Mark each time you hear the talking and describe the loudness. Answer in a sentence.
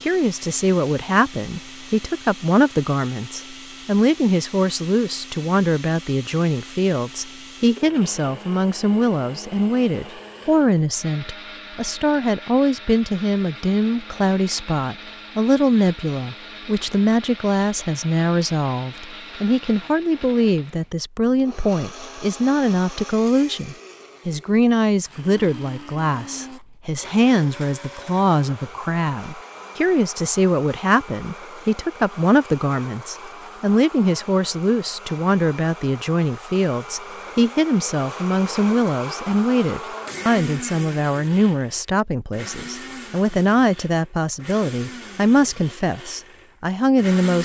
You can hear the talking from 0.0 to 47.3 s, at a steady volume.